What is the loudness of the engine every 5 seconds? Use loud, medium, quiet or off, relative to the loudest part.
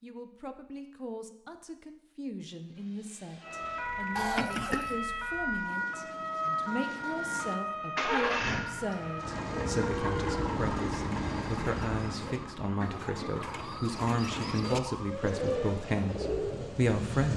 quiet, loud, loud, medium.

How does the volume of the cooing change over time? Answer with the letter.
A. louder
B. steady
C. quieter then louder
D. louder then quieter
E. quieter
A.